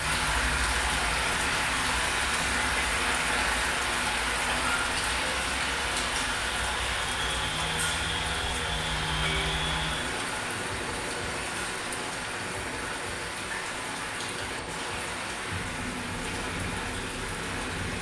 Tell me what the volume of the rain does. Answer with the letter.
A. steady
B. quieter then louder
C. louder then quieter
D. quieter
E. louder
D.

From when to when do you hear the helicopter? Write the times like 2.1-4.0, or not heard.
0.0-17.9.